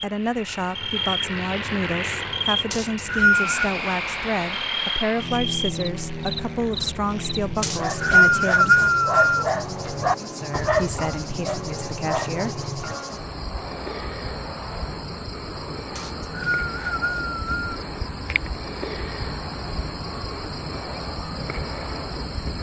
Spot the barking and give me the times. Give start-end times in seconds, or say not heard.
7.3-12.9.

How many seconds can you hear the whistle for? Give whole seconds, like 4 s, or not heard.
5 s.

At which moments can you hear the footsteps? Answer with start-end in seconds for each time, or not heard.
not heard.